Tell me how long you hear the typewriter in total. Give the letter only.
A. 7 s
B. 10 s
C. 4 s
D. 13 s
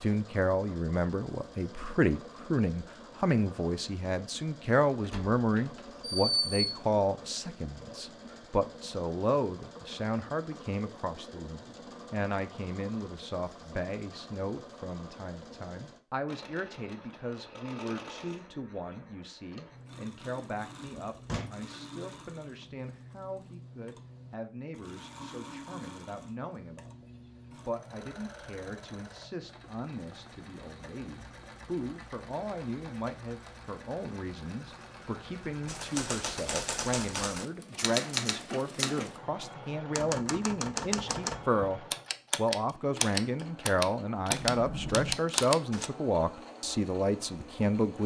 B.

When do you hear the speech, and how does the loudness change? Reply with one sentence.
The speech can be heard from 0.0 to 48.0 s, getting quieter then louder.